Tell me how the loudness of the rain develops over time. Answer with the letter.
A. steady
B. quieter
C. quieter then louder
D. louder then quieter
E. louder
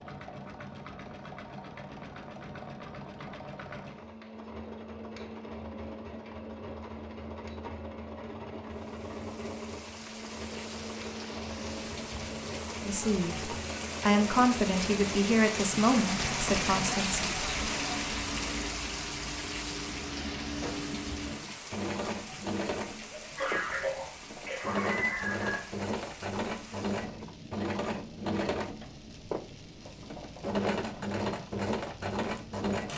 D.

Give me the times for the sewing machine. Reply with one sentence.
The sewing machine can be heard from 0.0 to 32.9 s.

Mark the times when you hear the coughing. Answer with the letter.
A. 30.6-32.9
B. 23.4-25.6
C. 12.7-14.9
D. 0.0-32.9
B.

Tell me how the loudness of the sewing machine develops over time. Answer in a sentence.
The loudness of the sewing machine goes up.